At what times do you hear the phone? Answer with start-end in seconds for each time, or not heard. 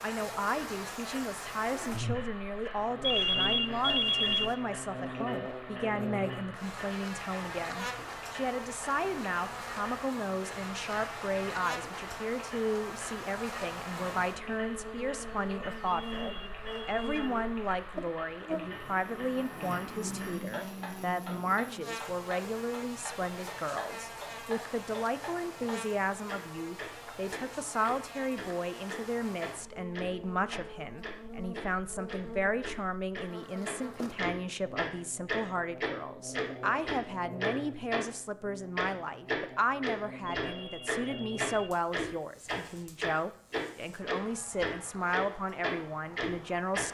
3.0-4.5, 15.8-17.4, 40.4-41.8.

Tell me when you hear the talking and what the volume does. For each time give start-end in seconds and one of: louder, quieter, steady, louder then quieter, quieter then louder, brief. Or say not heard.
0.0-46.8 steady.